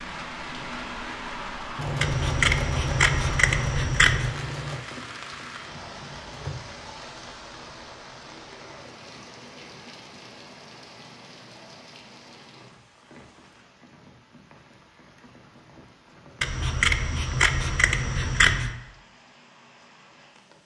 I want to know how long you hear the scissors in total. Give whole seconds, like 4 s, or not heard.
5 s.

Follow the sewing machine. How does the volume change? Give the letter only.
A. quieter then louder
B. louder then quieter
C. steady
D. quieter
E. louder
D.